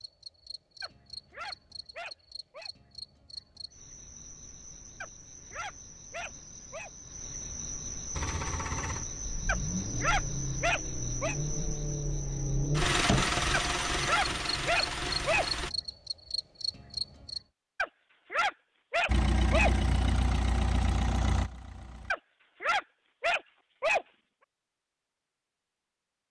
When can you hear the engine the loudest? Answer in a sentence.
The loudest moment of the engine is at 13 seconds.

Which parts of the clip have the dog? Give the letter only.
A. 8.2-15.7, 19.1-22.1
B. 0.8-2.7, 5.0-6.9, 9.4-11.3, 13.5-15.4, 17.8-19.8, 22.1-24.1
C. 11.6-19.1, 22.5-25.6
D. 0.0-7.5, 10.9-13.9
B.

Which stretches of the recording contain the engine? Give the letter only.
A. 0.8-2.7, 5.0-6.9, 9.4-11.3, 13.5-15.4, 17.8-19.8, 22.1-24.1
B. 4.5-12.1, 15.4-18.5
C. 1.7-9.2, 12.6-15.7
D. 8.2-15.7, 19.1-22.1
D.